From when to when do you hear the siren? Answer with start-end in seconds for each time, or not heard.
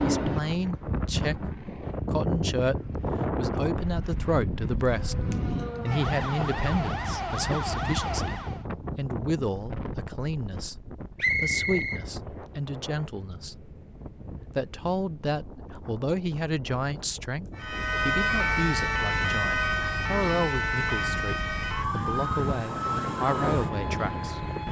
4.8-8.7, 17.6-24.6.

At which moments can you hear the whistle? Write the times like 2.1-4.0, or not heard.
11.2-12.1.